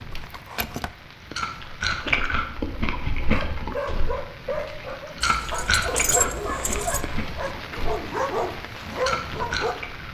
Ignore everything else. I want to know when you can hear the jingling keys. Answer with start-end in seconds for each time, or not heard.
0.1-0.9, 5.2-7.0.